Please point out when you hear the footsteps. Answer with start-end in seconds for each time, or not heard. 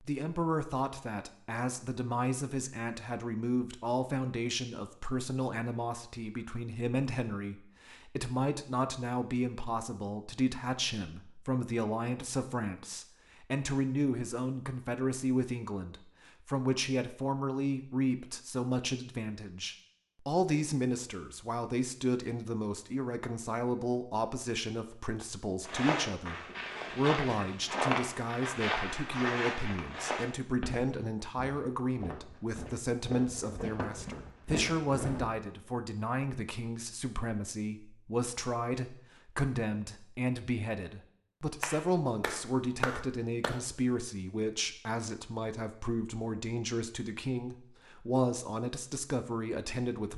25.6-35.2.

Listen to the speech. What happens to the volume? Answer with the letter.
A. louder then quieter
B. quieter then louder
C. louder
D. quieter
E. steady
E.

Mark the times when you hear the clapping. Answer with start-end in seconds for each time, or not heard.
41.6-43.6.